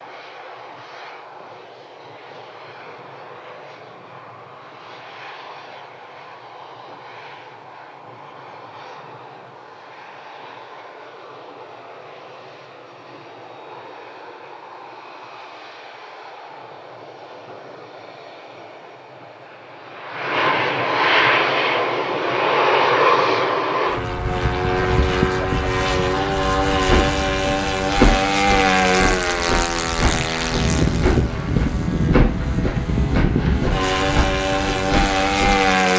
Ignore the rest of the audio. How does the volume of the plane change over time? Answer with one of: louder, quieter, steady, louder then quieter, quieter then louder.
louder.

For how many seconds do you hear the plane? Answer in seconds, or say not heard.
36 s.